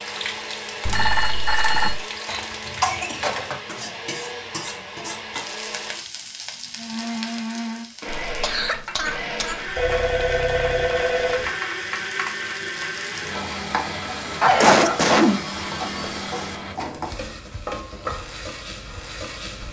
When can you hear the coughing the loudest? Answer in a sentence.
The loudest moment of the coughing is at 15 seconds.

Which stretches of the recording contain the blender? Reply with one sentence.
The blender can be heard from 0.0 to 16.8 s.